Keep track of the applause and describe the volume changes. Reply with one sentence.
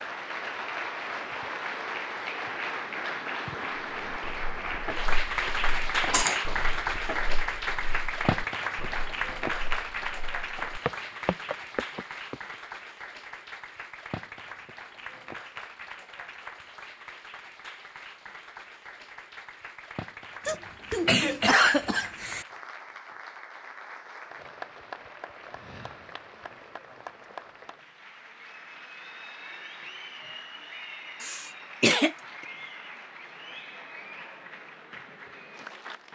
The volume of the applause goes down.